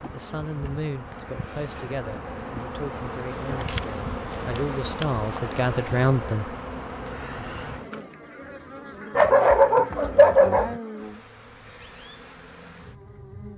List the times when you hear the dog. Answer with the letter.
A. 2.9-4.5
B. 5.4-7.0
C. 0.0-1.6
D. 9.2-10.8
D.